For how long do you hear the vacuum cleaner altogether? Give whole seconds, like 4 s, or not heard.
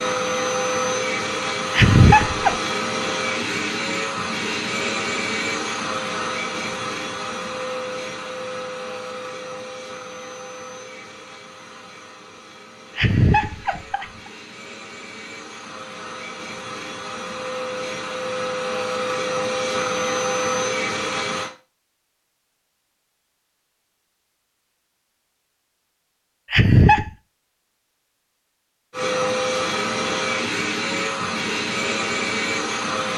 26 s.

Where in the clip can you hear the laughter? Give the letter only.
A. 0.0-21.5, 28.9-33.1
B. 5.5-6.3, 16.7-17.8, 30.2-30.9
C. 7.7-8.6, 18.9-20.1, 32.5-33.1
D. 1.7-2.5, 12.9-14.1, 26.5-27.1
D.